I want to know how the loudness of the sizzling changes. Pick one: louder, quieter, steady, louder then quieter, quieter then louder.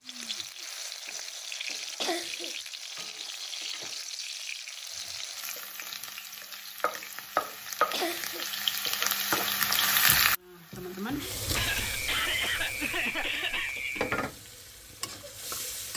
louder then quieter.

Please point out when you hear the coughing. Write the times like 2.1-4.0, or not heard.
2.0-2.5, 7.9-8.4, 11.6-14.2.